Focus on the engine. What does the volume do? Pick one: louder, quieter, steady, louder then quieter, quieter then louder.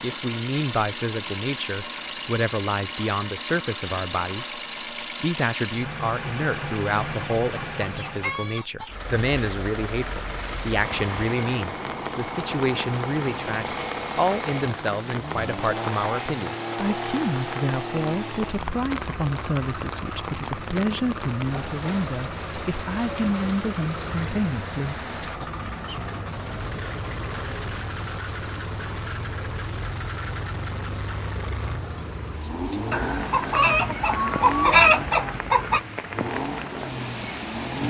steady.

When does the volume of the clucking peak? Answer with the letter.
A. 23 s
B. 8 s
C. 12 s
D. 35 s
D.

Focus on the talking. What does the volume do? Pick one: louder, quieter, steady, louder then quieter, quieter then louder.
steady.